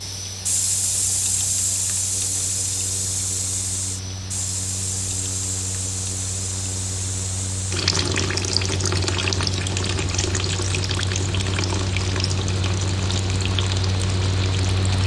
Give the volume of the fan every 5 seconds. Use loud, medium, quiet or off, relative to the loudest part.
medium, medium, loud.